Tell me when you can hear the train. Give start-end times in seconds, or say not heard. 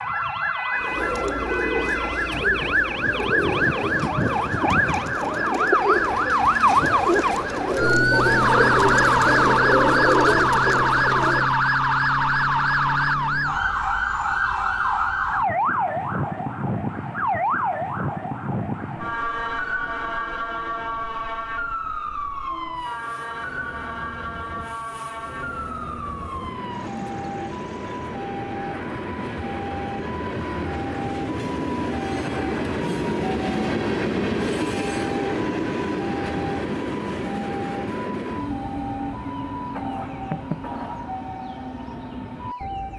18.9-42.9.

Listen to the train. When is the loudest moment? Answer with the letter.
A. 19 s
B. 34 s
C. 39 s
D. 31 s
B.